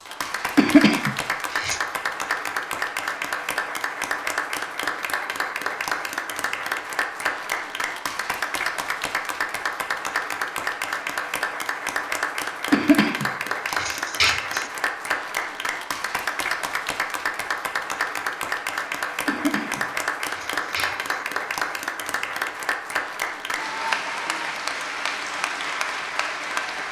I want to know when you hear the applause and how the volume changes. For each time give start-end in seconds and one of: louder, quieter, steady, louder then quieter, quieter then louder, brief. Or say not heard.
0.0-26.8 steady.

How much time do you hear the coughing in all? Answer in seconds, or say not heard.
5 s.